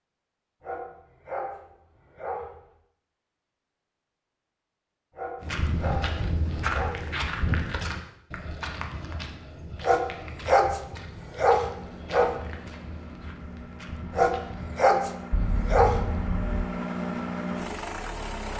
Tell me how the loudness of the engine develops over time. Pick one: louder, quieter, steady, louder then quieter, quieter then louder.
louder.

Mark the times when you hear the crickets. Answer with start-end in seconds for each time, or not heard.
not heard.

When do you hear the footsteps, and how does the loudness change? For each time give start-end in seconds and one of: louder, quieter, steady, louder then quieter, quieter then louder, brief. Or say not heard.
5.4-14.8 quieter.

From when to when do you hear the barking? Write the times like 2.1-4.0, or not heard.
0.6-2.5, 5.2-7.5, 9.8-12.3, 14.2-16.1.